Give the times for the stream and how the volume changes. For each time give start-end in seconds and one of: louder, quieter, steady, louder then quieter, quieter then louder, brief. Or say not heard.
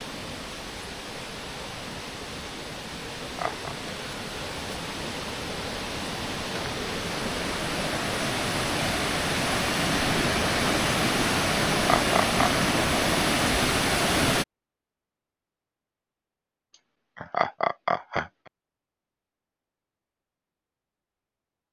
0.0-14.4 louder.